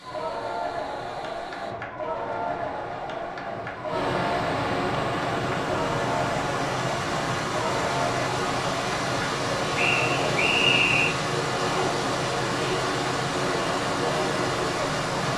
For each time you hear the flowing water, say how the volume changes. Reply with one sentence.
The flowing water can be heard from 0.0 to 15.3 s, getting louder.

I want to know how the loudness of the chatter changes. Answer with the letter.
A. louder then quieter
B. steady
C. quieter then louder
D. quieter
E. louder
B.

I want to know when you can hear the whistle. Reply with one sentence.
You can hear the whistle from 9.8 to 11.2 s.